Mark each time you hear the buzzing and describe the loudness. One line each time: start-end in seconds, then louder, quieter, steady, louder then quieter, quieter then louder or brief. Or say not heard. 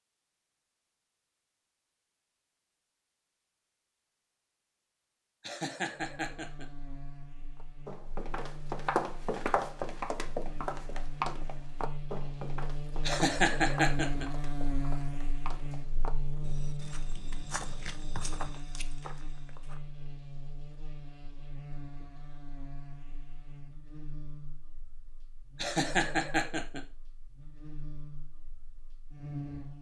6.0-29.7 louder then quieter.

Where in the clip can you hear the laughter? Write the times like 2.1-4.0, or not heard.
5.4-6.7, 13.1-14.2, 25.6-26.8.